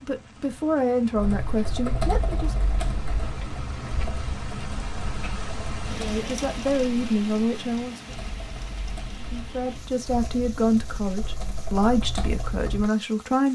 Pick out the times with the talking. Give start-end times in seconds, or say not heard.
0.0-2.5, 5.9-8.0, 9.2-13.5.